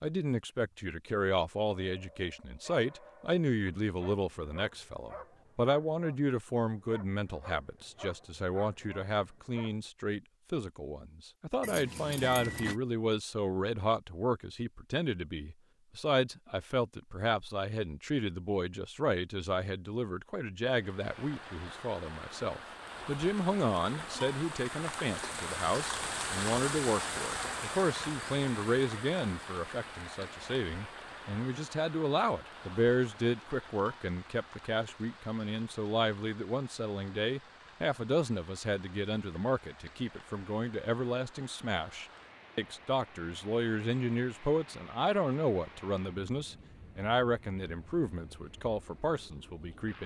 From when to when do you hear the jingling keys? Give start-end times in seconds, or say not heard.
11.6-12.8.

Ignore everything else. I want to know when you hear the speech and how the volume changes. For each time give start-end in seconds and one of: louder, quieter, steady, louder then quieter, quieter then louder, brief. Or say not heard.
0.0-50.0 steady.